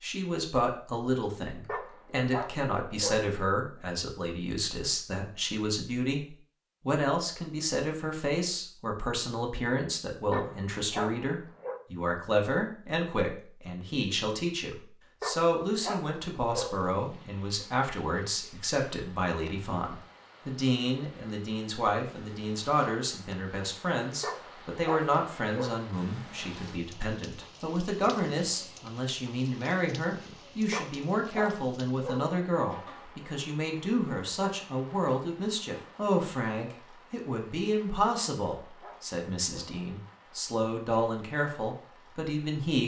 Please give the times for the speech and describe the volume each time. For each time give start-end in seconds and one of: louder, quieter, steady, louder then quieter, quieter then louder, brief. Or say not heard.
0.0-42.8 steady.